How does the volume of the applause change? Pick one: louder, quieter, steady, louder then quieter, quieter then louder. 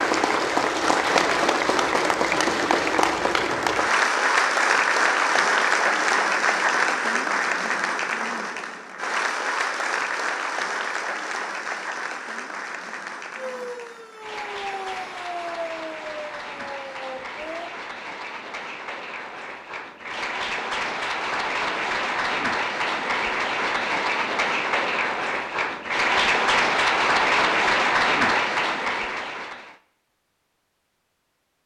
quieter then louder.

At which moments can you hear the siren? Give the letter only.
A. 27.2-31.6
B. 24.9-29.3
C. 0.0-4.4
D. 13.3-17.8
D.